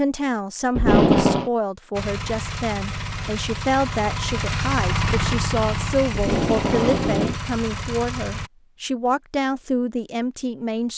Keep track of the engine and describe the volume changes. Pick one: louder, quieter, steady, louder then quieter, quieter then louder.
louder then quieter.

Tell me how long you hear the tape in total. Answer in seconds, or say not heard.
2 s.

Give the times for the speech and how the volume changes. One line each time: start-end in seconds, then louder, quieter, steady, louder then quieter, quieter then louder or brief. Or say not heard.
0.0-10.9 steady.